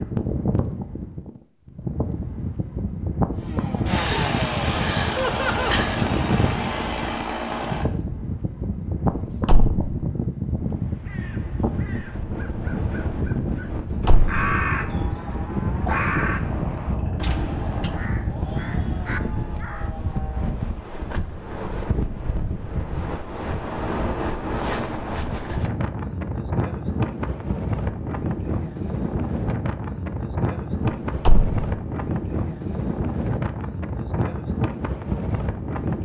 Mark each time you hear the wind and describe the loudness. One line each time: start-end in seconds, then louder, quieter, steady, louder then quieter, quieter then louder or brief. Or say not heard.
0.0-36.0 steady.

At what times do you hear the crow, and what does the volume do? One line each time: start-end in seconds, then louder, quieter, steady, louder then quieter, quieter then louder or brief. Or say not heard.
10.7-19.9 louder then quieter.